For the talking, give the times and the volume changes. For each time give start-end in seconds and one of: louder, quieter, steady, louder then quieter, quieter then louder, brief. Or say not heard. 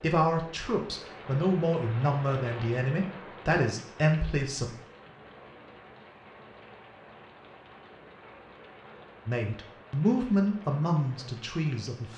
0.0-4.7 louder
9.2-12.1 brief.